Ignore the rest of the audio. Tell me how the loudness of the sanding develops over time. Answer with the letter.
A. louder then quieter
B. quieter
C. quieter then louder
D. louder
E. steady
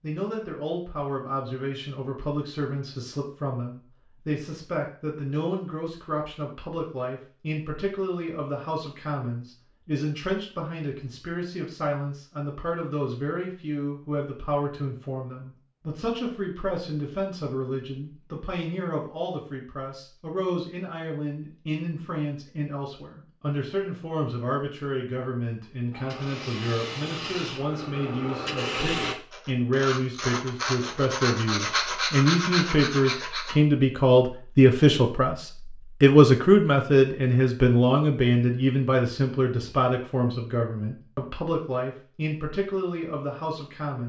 D.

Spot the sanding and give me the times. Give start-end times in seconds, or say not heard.
25.9-33.5.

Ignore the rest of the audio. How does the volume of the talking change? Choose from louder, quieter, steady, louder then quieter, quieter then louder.
louder.